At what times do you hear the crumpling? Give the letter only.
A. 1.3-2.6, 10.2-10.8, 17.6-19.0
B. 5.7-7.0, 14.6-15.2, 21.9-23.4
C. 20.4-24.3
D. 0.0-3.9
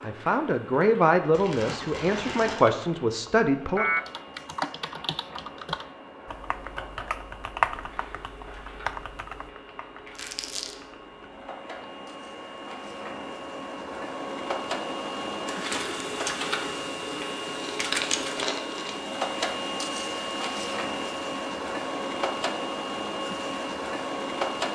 A.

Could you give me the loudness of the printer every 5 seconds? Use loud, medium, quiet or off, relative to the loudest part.
quiet, quiet, medium, loud, loud.